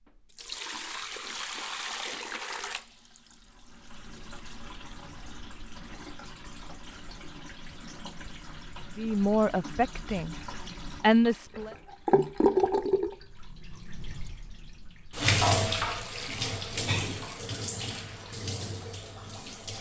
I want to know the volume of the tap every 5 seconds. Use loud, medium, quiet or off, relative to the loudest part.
medium, quiet, loud, loud.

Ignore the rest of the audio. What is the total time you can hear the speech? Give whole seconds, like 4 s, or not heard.
2 s.